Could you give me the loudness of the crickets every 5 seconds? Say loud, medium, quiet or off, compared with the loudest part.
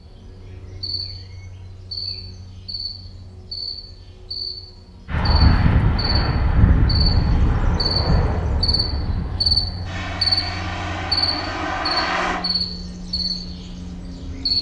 medium, loud, loud.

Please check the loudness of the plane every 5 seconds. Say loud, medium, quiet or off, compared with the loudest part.
off, loud, loud.